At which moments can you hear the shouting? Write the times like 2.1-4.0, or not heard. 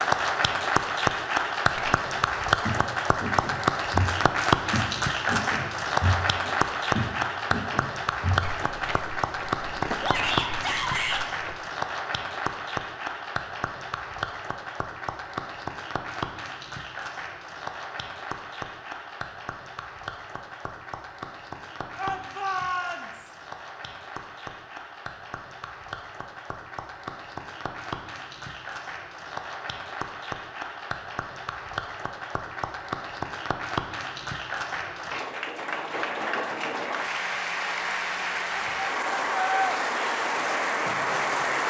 10.0-11.2, 21.9-23.3, 38.5-39.8.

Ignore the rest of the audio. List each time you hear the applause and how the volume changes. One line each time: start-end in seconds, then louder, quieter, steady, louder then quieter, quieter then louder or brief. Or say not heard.
0.0-41.6 quieter then louder.